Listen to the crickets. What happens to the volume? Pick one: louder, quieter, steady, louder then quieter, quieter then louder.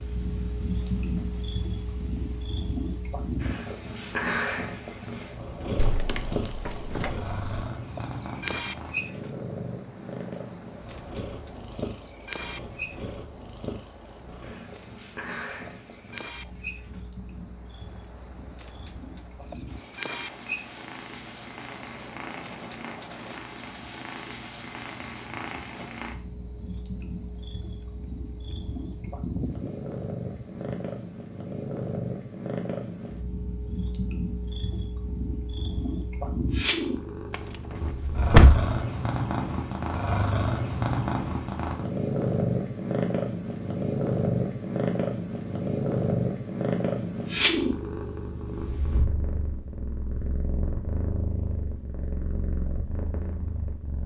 quieter then louder.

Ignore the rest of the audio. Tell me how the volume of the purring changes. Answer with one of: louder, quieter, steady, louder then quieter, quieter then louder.
quieter then louder.